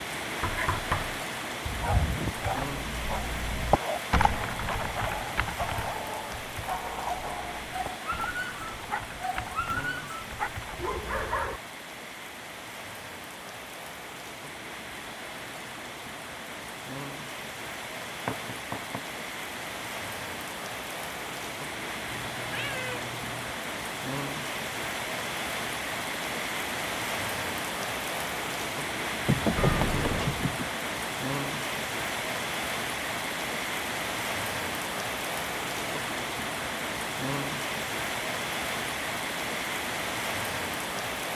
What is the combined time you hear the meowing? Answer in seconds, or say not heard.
3 s.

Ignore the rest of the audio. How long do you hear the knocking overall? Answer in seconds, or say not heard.
3 s.